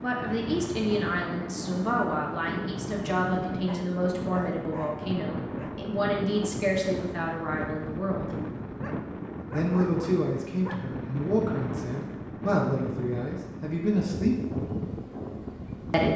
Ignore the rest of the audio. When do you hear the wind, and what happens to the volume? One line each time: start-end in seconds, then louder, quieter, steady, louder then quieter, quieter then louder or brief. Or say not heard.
0.0-16.1 steady.